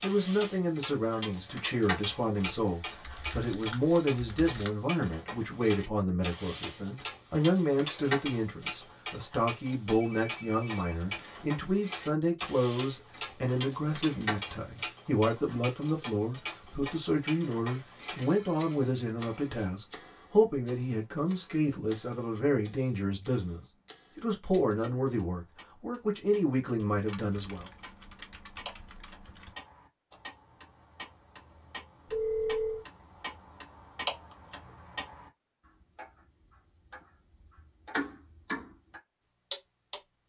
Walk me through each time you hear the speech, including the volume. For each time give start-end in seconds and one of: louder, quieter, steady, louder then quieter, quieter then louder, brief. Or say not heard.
0.0-27.6 steady.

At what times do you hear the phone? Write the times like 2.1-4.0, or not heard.
9.9-11.2, 17.6-19.7, 32.0-32.9.